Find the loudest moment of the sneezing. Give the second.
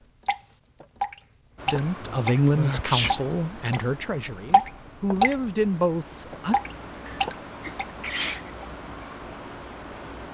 3 s.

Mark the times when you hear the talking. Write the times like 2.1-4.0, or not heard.
1.6-6.5.